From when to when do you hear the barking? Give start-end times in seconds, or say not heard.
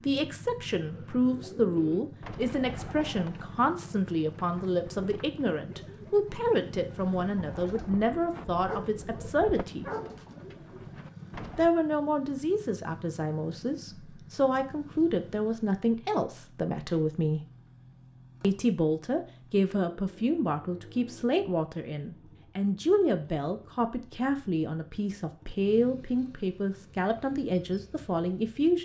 8.7-10.3.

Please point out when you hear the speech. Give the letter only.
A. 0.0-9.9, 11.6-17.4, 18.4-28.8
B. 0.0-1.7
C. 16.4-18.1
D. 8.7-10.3
A.